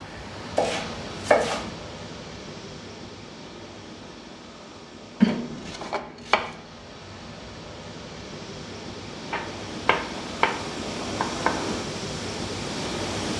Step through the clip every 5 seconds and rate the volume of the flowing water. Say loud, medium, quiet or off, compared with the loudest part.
medium, medium, loud.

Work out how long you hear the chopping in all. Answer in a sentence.
The chopping can be heard for 5 seconds in total.